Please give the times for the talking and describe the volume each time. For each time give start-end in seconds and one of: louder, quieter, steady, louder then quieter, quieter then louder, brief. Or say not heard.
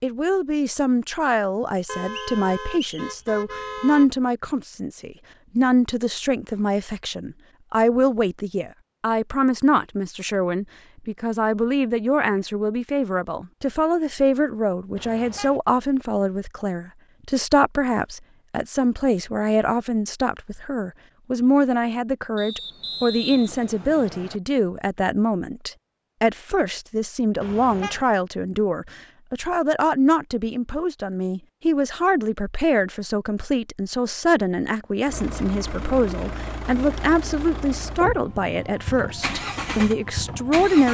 0.0-40.8 steady.